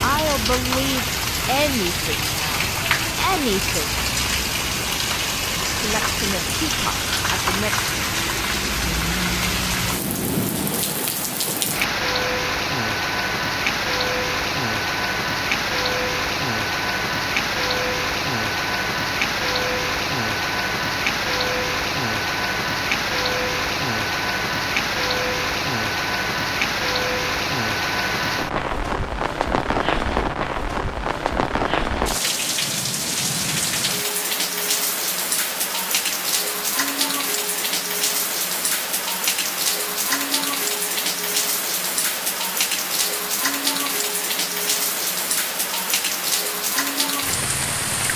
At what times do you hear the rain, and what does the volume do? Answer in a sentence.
You can hear the rain from 0.0 to 48.1 s, at a steady volume.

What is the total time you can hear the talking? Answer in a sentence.
You can hear the talking for 6 seconds altogether.